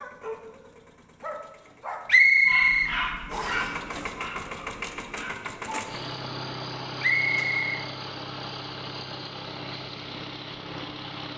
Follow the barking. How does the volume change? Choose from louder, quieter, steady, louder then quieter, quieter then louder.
louder then quieter.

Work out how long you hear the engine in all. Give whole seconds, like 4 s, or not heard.
11 s.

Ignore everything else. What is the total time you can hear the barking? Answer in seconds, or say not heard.
6 s.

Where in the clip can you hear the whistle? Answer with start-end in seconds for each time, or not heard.
2.0-3.6, 7.0-7.8.